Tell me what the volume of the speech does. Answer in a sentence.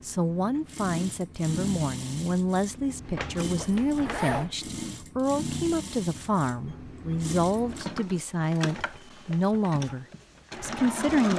The loudness of the speech stays about the same.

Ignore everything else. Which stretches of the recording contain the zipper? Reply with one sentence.
The zipper can be heard from 3.5 to 4.5 s.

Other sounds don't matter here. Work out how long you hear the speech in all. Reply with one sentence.
You can hear the speech for 11 seconds altogether.